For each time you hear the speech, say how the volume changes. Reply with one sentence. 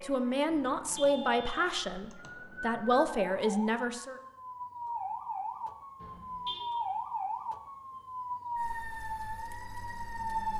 The speech can be heard from 0.0 to 4.2 s, getting quieter then louder.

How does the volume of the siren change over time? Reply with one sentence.
The loudness of the siren goes up.